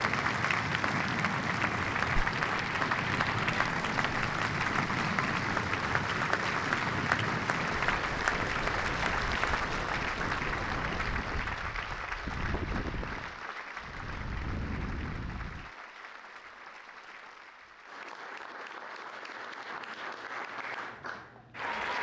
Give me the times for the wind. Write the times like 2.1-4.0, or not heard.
0.0-15.7.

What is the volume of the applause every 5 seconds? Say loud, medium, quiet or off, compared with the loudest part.
loud, loud, medium, quiet, medium.